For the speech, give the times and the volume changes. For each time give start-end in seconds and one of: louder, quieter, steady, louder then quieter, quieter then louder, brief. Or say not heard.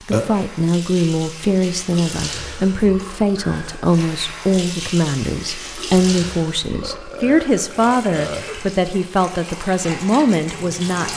0.1-11.1 steady.